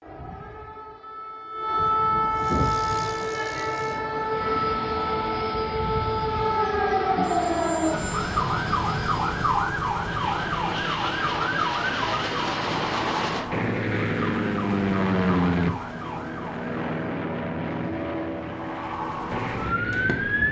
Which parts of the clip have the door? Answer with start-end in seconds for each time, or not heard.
not heard.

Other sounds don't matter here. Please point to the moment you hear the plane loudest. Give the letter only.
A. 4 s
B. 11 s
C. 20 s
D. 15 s
D.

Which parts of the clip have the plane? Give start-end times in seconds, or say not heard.
2.3-20.4.